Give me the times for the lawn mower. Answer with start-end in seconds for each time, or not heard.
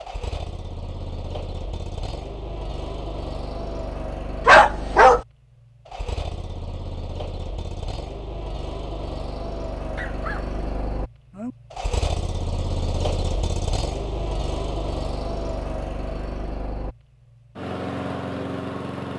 0.0-19.1.